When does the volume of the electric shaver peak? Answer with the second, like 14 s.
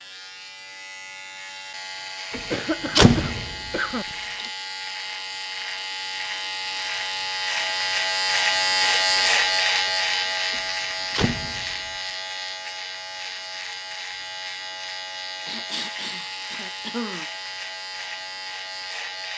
9 s.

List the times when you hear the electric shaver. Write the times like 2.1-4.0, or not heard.
0.0-19.3.